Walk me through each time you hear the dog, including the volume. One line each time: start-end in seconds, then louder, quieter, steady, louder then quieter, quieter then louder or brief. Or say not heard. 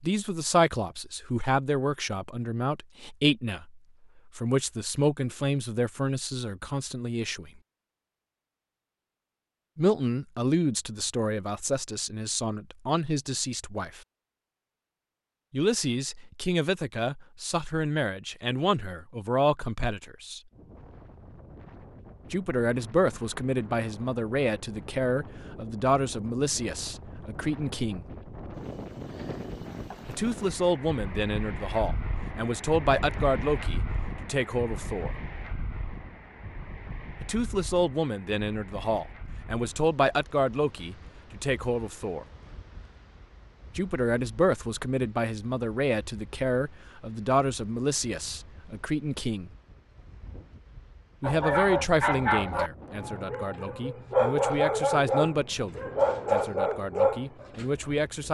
51.2-57.6 quieter then louder.